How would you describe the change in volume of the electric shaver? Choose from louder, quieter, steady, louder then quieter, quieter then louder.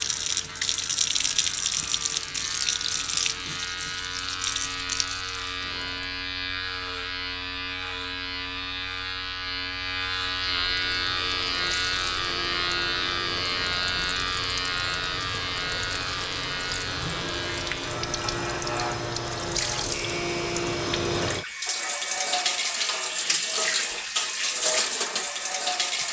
louder then quieter.